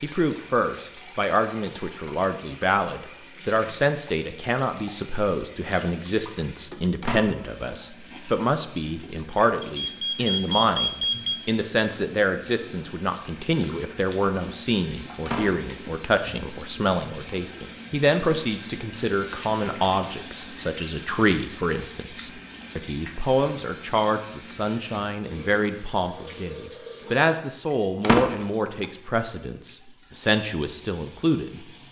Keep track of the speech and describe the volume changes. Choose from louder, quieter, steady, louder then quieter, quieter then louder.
steady.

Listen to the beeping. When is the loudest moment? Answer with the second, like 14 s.
11 s.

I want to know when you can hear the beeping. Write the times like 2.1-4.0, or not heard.
9.6-11.4.